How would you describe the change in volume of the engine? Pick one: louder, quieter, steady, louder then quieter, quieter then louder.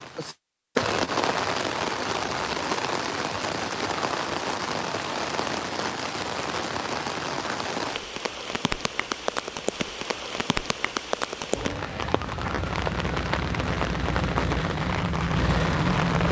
louder.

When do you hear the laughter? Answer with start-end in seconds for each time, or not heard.
not heard.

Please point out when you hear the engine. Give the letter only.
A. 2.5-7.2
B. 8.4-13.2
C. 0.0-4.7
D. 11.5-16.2
D.